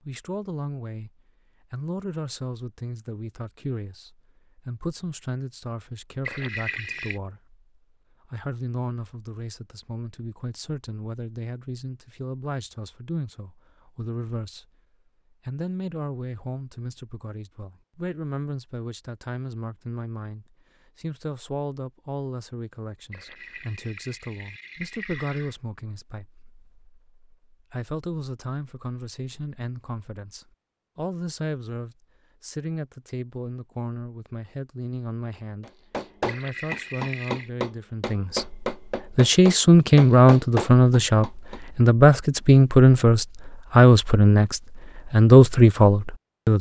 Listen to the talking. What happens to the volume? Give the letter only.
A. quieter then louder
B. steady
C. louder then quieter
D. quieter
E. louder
E.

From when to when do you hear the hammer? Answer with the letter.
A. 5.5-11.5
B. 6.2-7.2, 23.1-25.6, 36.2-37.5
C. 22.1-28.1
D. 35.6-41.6
D.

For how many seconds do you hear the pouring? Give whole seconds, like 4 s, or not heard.
5 s.